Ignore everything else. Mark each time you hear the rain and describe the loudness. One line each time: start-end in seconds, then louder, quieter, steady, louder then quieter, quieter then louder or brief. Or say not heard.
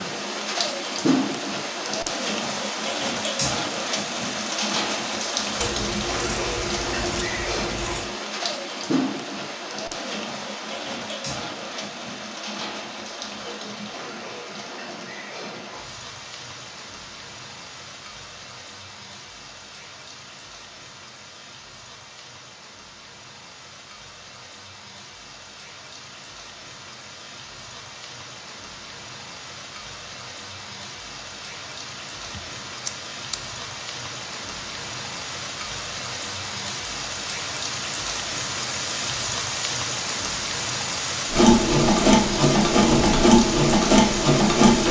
0.0-44.8 quieter then louder.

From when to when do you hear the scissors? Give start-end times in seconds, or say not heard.
5.6-8.2, 32.4-33.4.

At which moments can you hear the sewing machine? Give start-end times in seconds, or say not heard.
41.2-44.8.